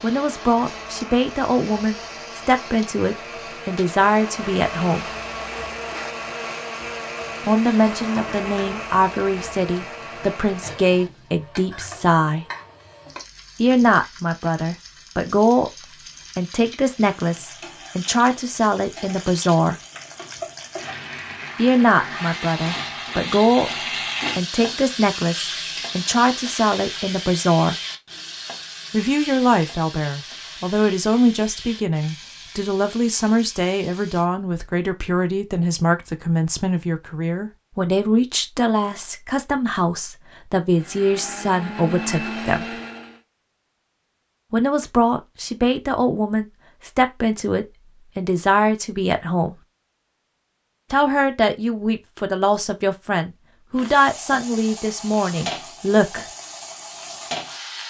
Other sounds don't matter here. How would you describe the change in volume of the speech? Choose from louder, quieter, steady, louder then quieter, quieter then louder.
steady.